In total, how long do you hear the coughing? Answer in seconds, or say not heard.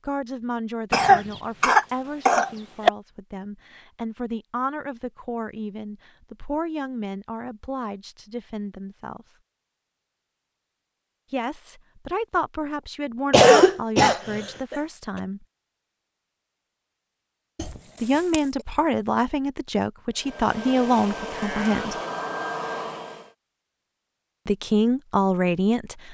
4 s.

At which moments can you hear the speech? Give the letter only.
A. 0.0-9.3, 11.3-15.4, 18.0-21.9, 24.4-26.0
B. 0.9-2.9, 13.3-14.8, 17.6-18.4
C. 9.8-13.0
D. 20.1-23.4
A.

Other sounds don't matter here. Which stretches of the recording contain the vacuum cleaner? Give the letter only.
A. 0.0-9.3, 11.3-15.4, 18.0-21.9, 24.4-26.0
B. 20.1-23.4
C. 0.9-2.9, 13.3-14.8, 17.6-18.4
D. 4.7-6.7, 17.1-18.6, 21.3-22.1
B.